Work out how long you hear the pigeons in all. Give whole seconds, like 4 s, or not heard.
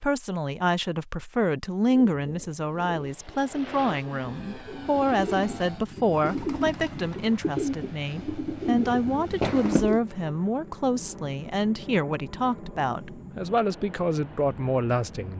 8 s.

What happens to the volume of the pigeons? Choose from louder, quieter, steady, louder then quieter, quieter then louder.
louder.